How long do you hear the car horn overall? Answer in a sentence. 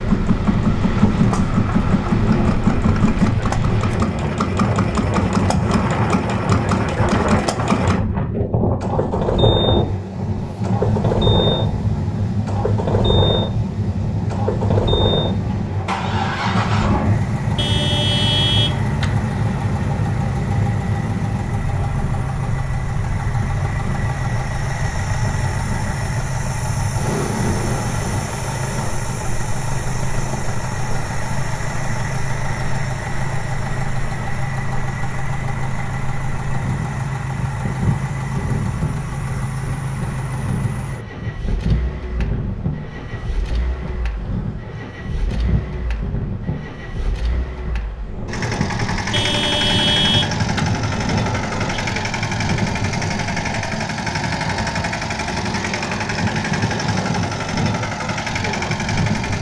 You can hear the car horn for 5 seconds altogether.